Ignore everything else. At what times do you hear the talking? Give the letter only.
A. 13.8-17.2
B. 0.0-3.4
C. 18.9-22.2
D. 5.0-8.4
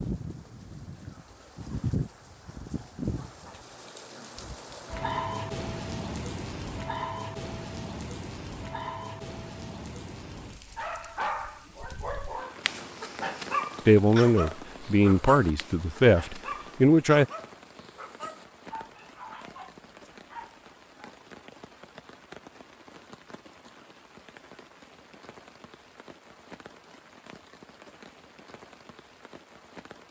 A.